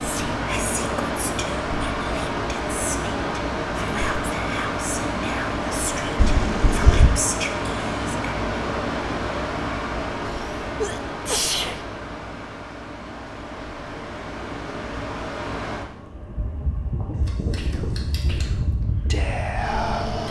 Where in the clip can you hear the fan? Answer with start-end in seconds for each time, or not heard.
0.0-20.2.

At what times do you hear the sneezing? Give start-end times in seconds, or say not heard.
6.2-7.2, 10.2-11.8.